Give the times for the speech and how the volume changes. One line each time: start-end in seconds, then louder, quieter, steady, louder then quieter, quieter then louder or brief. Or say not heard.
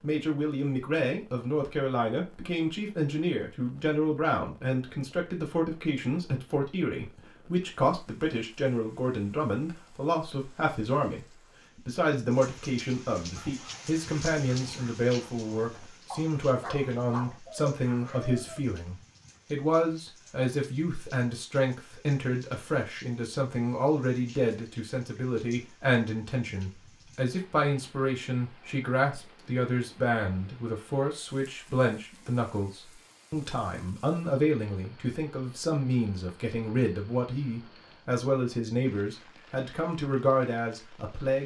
0.0-41.4 steady.